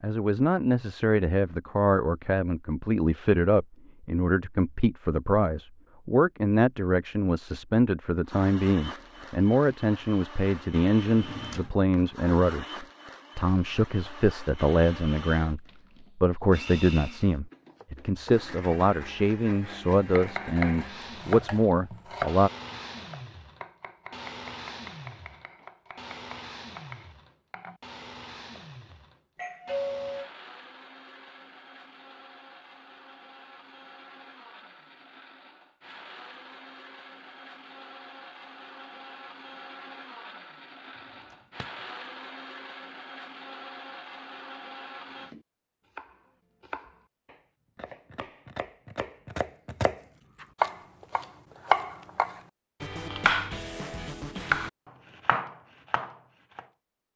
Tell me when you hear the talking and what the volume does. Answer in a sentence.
You can hear the talking from 0.0 to 22.5 s, at a steady volume.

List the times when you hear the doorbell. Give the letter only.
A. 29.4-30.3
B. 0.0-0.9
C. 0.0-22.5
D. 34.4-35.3
A.